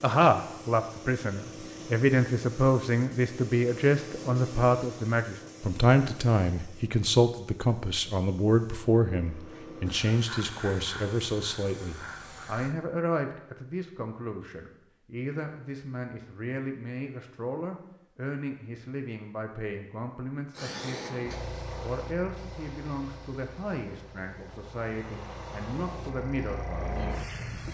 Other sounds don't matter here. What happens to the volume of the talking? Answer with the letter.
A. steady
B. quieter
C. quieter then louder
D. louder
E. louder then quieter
B.